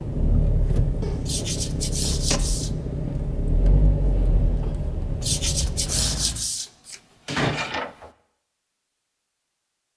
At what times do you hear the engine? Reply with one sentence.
The engine can be heard from 0.0 to 6.5 s.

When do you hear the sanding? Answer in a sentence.
The sanding can be heard from 1.2 to 2.7 s and from 5.2 to 8.1 s.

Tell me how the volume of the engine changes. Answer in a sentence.
The volume of the engine stays about the same.